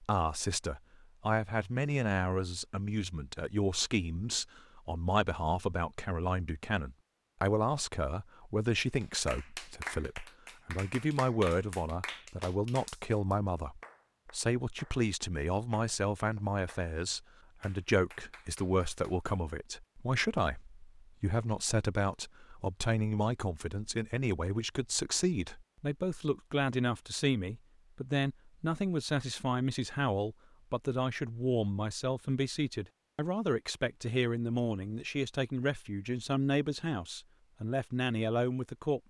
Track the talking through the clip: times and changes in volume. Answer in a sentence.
You can hear the talking from 0.0 to 39.0 s, at a steady volume.